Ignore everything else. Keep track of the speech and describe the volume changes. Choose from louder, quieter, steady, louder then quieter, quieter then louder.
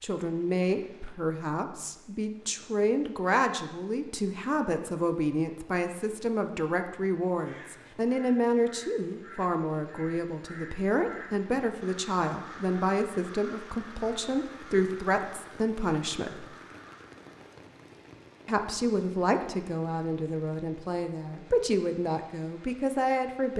steady.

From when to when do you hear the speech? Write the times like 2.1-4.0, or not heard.
0.0-16.4, 18.4-23.5.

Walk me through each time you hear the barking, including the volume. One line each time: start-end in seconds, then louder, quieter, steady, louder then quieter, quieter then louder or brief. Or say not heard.
not heard.